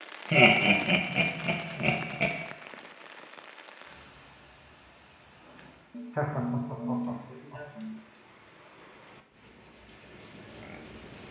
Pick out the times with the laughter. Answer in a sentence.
The laughter can be heard from 0.3 to 2.3 s and from 5.9 to 8.0 s.